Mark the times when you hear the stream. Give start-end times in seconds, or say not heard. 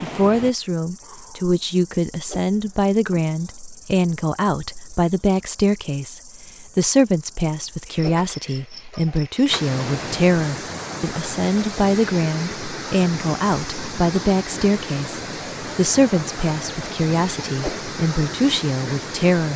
9.4-19.5.